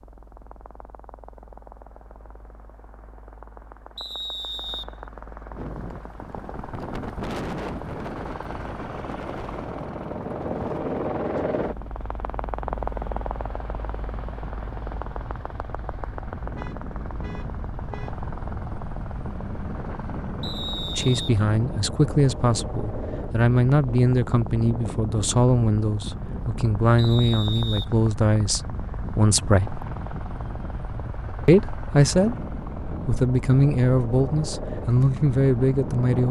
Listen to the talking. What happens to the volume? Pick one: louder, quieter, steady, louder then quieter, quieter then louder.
steady.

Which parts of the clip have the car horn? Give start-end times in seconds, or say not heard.
16.6-18.1.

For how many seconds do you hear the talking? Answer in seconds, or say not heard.
14 s.